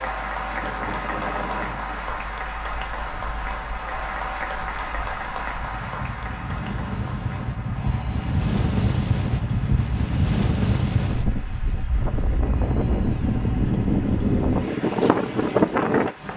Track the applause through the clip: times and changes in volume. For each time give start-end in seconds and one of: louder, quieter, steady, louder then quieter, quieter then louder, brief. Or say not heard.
0.0-16.3 quieter.